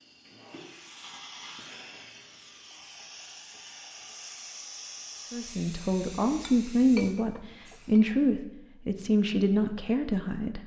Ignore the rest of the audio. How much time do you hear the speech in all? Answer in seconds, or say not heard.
5 s.